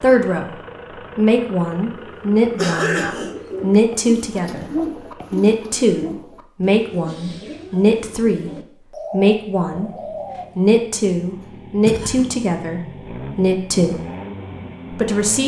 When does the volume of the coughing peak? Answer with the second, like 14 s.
3 s.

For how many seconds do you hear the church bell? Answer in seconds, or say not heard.
not heard.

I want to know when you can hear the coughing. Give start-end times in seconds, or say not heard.
2.5-3.4, 11.4-12.3.